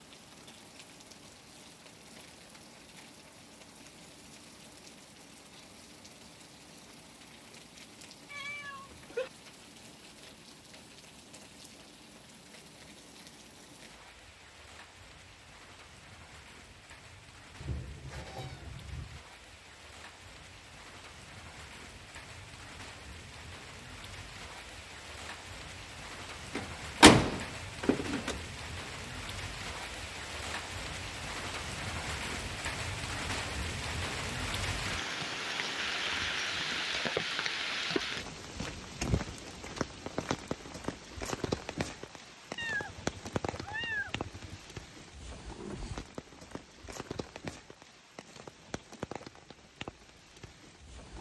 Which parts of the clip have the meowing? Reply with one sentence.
You can hear the meowing from 8.3 to 9.3 s, from 17.6 to 19.2 s and from 42.5 to 44.6 s.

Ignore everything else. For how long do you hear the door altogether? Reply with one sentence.
You can hear the door for 2 seconds altogether.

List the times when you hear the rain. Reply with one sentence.
The rain can be heard from 0.0 to 51.1 s.